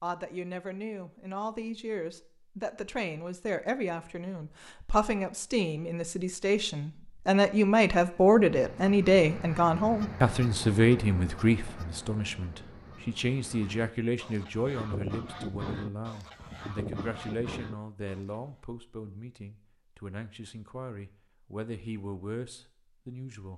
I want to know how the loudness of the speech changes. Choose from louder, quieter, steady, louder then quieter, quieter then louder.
louder then quieter.